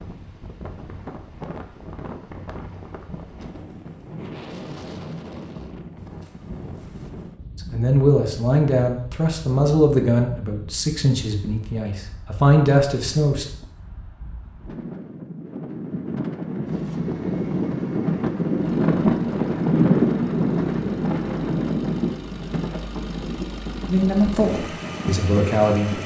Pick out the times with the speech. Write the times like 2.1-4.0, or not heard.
7.7-13.4, 23.9-26.0.